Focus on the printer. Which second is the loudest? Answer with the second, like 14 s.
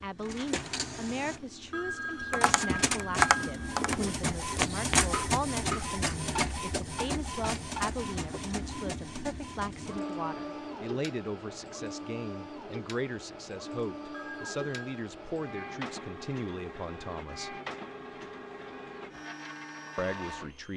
5 s.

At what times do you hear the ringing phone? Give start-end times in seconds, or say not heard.
1.7-3.8, 14.1-15.1.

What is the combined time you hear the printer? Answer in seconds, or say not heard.
21 s.